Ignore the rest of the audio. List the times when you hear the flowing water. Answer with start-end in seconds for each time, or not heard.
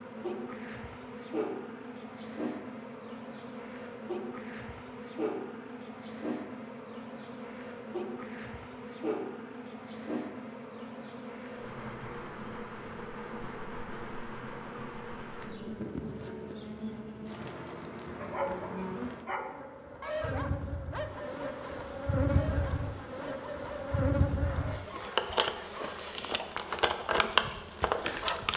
not heard.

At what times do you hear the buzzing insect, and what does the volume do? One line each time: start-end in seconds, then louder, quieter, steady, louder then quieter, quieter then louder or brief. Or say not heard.
0.0-28.5 louder.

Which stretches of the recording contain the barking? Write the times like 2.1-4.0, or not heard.
18.1-26.1.